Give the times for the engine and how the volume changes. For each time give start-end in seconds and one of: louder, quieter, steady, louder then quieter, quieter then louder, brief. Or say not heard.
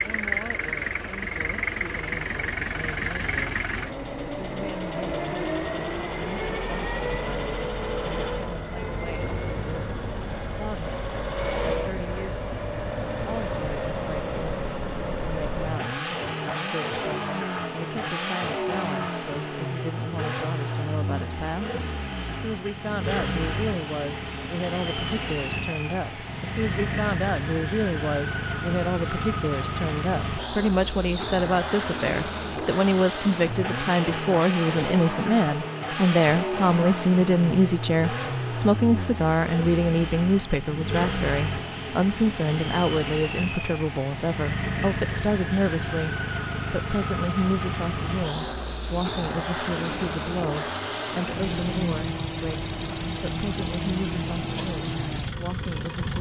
0.0-56.1 steady.